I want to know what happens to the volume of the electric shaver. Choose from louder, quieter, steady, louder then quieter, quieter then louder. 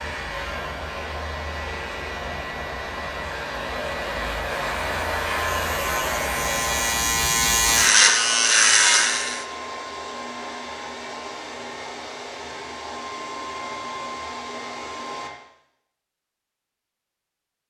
louder.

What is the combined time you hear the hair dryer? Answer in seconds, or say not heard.
15 s.